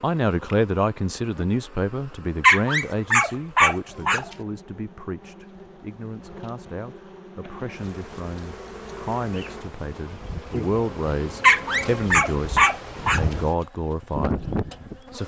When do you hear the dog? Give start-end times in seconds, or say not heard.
2.4-4.2, 11.4-13.2.